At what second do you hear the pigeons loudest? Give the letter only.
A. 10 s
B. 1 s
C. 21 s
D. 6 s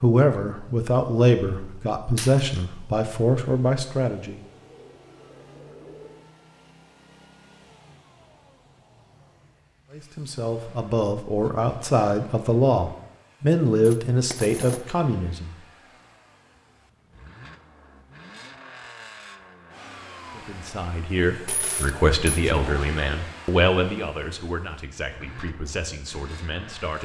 D.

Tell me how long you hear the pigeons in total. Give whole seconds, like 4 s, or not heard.
2 s.